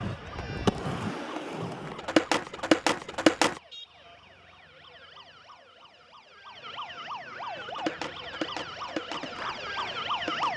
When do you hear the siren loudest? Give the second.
10 s.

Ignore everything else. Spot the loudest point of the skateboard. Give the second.
3 s.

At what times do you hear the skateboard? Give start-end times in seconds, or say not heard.
0.0-3.6, 7.5-10.5.